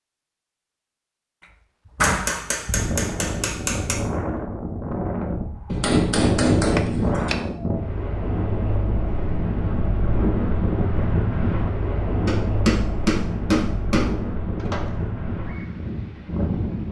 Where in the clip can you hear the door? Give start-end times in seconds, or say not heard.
1.9-2.5, 6.8-7.4, 14.6-15.0.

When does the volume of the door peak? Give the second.
2 s.